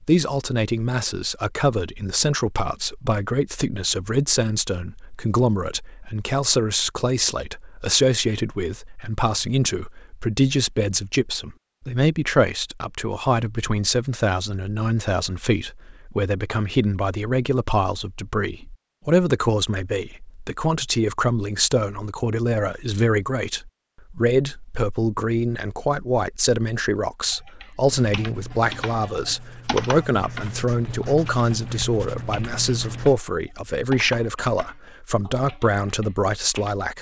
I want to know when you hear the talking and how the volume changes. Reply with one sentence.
The talking can be heard from 0.0 to 36.9 s, at a steady volume.